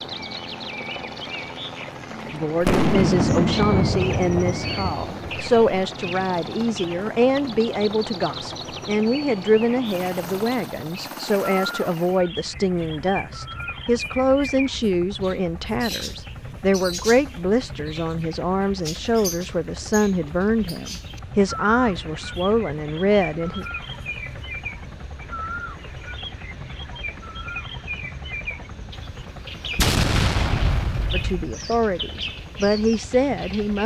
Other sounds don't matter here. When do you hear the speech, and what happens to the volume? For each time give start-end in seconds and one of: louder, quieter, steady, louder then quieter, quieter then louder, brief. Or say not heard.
2.3-23.6 steady
31.1-33.8 brief.